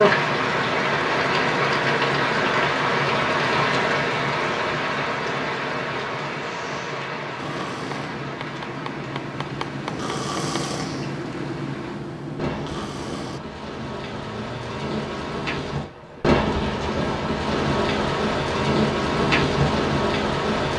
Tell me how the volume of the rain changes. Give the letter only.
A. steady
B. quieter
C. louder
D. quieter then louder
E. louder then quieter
D.